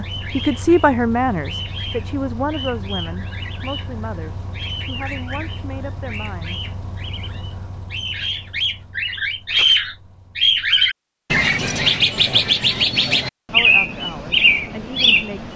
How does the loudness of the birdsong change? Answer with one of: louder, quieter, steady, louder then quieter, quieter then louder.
louder.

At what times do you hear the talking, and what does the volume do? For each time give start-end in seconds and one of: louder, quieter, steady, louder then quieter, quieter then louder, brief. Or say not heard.
0.0-6.7 quieter
13.5-15.5 brief.